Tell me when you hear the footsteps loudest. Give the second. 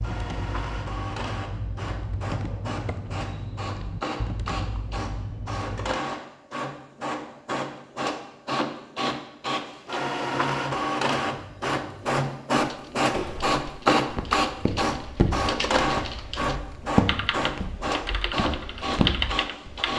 17 s.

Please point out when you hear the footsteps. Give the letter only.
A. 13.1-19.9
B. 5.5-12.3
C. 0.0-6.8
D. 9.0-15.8
A.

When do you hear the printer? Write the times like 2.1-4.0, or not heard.
0.0-19.9.